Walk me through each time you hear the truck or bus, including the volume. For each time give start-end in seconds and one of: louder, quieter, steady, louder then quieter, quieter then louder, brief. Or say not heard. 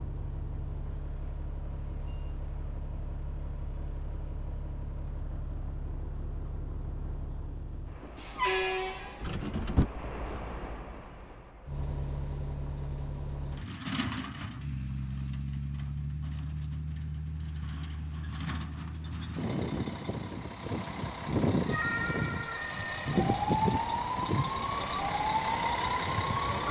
0.0-26.6 louder.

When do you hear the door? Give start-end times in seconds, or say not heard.
9.2-9.9.